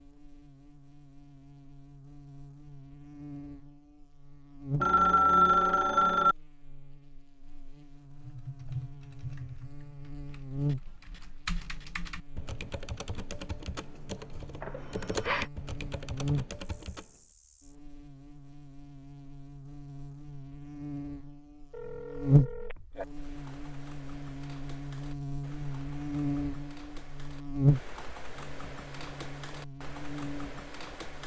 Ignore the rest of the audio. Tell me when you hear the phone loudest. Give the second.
5 s.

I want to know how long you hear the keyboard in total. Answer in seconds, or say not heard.
17 s.